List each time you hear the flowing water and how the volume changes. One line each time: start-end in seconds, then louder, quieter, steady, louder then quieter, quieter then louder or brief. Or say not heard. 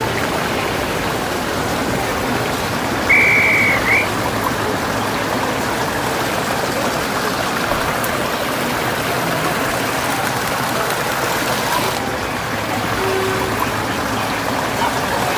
0.0-15.3 steady.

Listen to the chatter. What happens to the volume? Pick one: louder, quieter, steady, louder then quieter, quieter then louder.
steady.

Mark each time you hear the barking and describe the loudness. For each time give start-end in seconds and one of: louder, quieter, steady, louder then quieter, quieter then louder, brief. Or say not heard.
not heard.